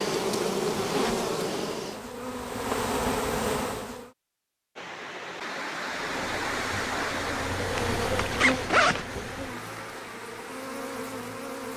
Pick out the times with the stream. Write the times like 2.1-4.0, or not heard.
4.8-11.7.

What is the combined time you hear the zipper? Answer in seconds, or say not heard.
2 s.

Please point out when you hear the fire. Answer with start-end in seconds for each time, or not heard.
not heard.